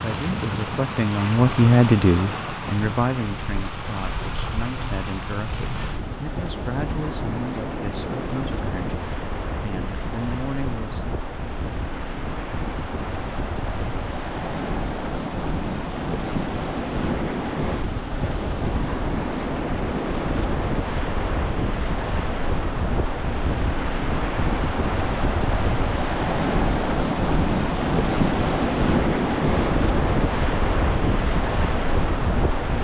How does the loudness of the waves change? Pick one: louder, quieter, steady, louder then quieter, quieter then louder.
louder.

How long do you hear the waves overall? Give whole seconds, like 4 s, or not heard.
33 s.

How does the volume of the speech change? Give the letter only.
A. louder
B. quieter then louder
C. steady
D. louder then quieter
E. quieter
E.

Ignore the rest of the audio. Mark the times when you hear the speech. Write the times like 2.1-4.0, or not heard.
0.0-11.1.